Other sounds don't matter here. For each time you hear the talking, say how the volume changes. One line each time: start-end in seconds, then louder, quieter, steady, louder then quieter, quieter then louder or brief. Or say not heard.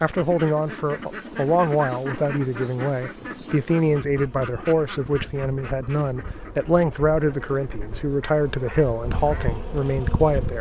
0.0-10.5 steady.